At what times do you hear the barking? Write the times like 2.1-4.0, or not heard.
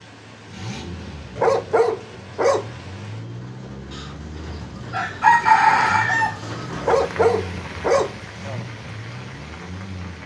1.4-2.6, 6.8-8.7.